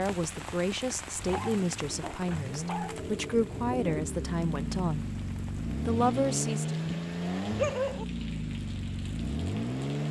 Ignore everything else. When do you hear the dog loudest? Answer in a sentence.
The loudest moment of the dog is at 8 seconds.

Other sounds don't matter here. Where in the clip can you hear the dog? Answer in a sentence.
You can hear the dog from 1.3 to 3.0 s and from 6.8 to 8.1 s.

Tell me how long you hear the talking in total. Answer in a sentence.
The talking can be heard for 6 seconds in total.